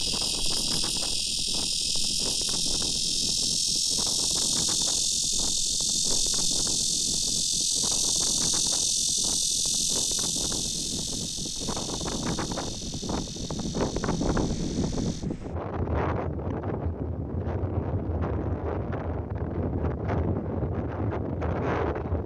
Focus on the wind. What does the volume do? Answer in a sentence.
The loudness of the wind goes up.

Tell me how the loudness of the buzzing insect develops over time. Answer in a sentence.
The loudness of the buzzing insect goes down.